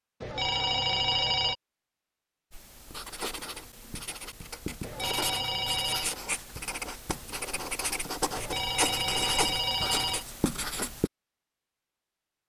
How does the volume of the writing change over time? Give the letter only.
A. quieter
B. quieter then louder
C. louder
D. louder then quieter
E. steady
C.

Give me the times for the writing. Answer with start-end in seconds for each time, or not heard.
2.5-11.1.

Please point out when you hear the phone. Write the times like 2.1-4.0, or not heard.
0.2-1.6, 4.8-6.1, 8.3-10.2.